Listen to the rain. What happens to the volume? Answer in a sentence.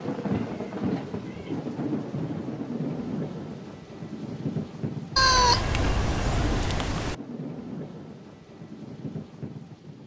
The volume of the rain goes down.